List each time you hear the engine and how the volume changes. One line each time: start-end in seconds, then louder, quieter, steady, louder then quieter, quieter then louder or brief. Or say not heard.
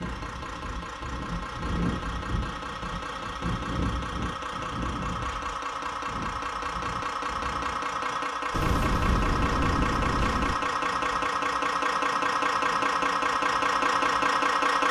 0.0-14.8 louder.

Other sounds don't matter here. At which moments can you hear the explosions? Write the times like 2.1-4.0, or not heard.
8.5-10.6.